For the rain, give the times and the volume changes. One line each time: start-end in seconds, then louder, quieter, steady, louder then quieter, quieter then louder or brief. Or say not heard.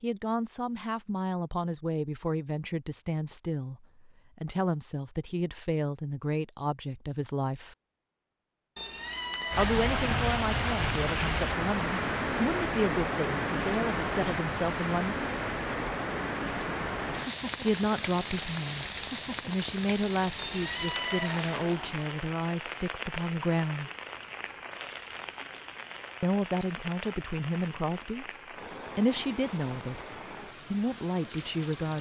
9.5-31.9 quieter.